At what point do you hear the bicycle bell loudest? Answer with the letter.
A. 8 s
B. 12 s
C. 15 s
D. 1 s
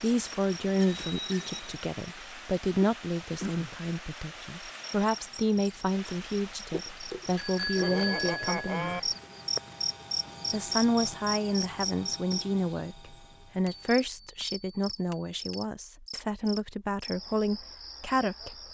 A.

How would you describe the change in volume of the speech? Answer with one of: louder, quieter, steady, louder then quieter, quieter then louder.
steady.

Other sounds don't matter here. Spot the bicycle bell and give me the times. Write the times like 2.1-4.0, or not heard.
0.1-1.6, 7.3-9.0, 13.7-15.7.